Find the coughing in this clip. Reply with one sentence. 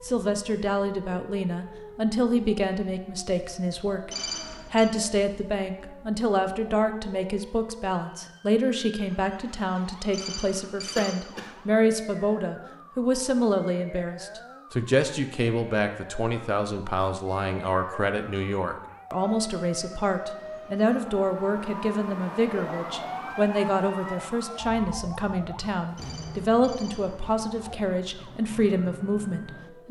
You can hear the coughing from 10.9 to 11.6 s.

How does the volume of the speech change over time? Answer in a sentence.
The volume of the speech stays about the same.